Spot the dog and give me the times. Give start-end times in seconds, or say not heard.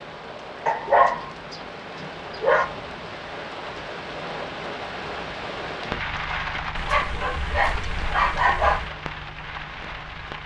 0.7-2.6, 6.8-8.9.